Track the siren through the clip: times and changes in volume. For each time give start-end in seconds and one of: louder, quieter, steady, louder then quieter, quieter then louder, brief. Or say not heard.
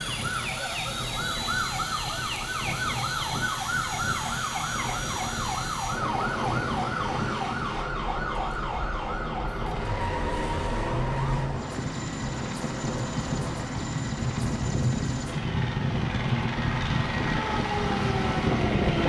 0.0-11.7 steady
17.4-19.0 brief.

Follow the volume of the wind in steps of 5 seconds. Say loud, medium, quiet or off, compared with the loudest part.
medium, medium, loud, loud.